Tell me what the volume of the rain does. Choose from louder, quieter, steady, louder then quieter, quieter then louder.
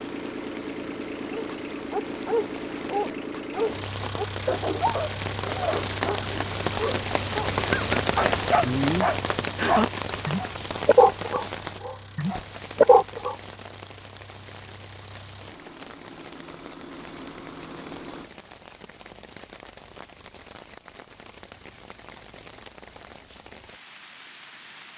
louder then quieter.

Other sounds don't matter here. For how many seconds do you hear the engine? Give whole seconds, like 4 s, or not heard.
18 s.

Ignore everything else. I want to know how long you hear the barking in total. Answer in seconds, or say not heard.
12 s.